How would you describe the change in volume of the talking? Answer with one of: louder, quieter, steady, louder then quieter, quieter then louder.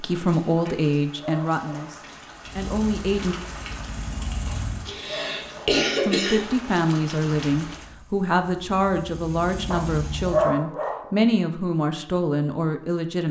steady.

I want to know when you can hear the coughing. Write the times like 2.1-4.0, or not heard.
4.8-6.5.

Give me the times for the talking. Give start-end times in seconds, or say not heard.
0.0-3.4, 6.0-13.2.